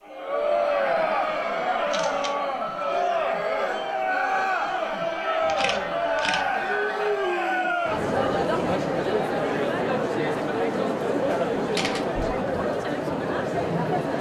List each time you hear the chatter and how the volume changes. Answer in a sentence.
The chatter can be heard from 0.0 to 14.1 s, at a steady volume.